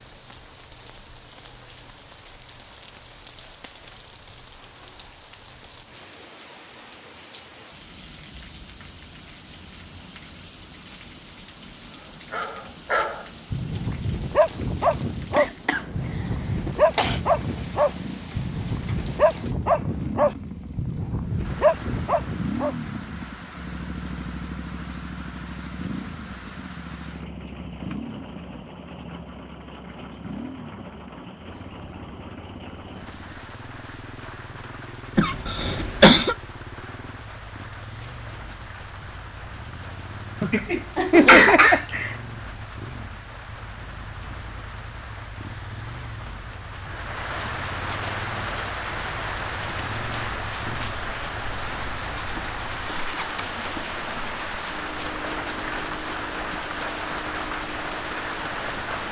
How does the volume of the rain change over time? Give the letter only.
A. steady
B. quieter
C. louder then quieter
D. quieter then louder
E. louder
E.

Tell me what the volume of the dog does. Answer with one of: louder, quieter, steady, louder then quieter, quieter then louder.
steady.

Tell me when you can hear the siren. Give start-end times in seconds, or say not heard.
not heard.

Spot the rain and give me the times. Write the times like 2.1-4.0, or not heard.
0.0-59.0.